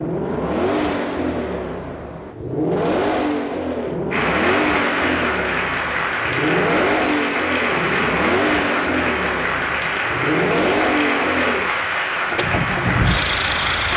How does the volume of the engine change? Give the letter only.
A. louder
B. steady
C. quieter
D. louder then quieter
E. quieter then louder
B.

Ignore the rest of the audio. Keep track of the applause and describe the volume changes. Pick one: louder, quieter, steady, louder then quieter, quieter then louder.
steady.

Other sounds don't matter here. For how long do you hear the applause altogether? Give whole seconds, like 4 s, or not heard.
10 s.